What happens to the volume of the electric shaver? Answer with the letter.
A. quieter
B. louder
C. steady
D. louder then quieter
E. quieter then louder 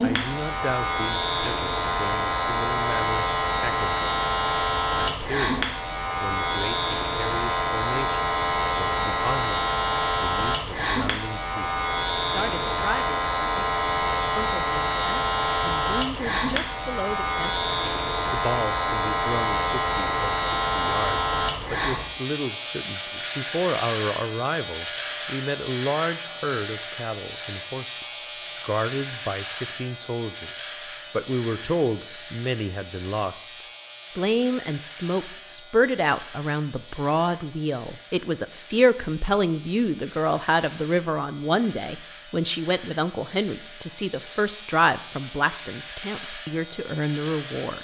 A.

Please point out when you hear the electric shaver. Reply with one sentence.
You can hear the electric shaver from 0.0 to 47.7 s.